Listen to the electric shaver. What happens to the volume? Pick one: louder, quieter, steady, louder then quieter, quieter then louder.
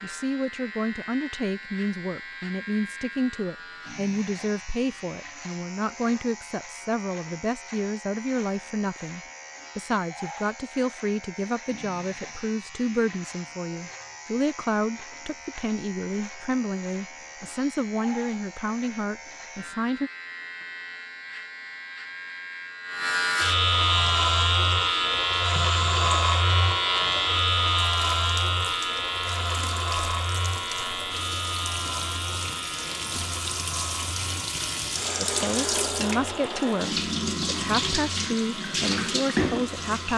louder then quieter.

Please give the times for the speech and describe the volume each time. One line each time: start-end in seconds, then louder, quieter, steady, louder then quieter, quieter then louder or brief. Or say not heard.
0.0-20.1 steady
35.2-40.1 steady.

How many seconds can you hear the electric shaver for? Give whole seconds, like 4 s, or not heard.
40 s.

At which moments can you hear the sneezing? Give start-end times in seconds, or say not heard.
not heard.